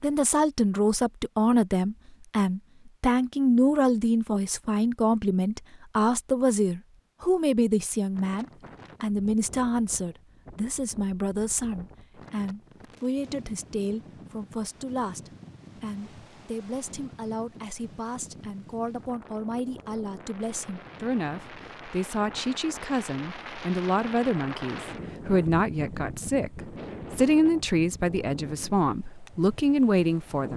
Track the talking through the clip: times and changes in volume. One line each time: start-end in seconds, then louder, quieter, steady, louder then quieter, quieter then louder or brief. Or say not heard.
0.0-30.5 quieter then louder.